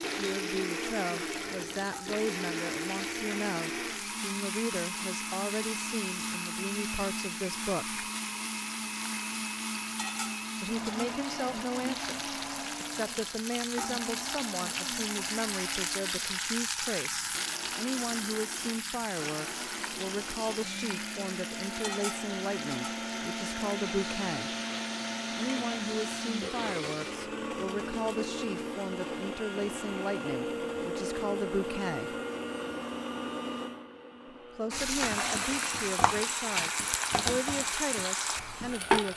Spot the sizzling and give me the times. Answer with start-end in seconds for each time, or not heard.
0.0-27.2, 34.7-39.1.